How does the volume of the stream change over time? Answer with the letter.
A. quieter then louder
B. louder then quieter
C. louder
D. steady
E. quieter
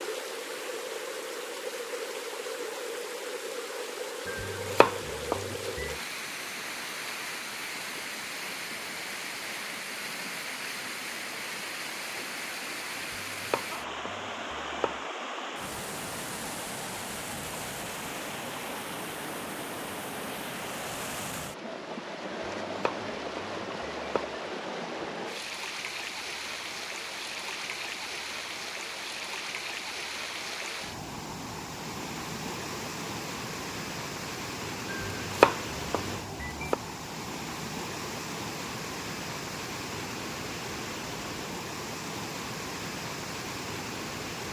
D.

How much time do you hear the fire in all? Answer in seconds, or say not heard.
not heard.